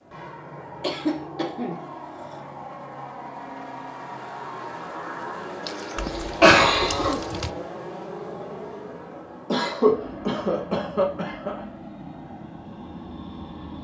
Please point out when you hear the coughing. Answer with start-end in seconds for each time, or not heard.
0.8-2.4, 6.0-7.2, 9.5-11.6.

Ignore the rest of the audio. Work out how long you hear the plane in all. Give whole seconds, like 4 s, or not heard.
14 s.